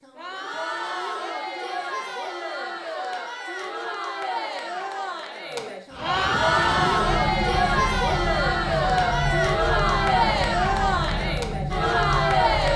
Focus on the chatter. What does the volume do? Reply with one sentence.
The volume of the chatter goes up.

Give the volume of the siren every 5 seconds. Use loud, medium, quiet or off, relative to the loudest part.
off, loud, loud.